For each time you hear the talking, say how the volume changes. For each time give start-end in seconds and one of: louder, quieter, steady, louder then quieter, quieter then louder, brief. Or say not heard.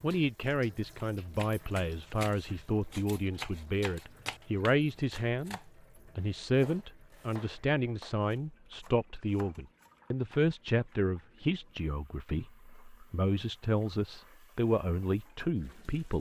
0.0-16.1 steady.